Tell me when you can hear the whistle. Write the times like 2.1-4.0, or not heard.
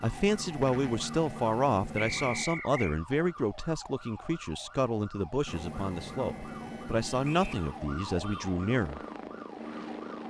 1.9-3.0, 7.2-7.7.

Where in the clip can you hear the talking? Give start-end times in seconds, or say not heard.
0.0-9.0.